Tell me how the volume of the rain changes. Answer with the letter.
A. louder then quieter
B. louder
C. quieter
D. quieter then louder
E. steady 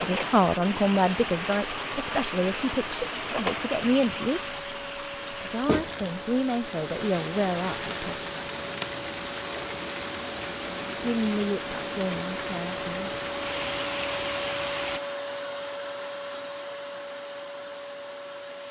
E.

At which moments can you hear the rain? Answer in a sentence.
You can hear the rain from 0.0 to 15.0 s.